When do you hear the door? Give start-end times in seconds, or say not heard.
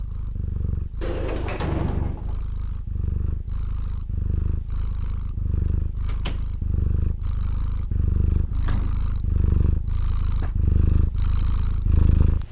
1.0-2.5, 6.0-6.5, 8.4-9.1.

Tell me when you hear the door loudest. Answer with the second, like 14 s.
2 s.